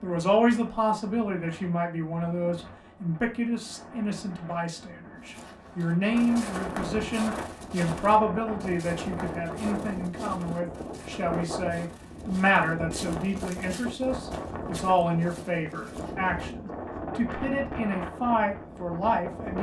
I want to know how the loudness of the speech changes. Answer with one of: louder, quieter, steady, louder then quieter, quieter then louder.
steady.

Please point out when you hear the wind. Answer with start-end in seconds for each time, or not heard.
0.0-19.5.